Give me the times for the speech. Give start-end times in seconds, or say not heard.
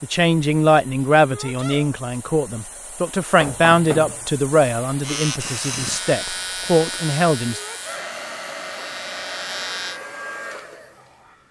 0.0-7.6.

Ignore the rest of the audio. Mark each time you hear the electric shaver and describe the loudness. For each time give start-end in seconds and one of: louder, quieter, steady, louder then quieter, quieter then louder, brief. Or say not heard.
5.0-10.0 quieter then louder.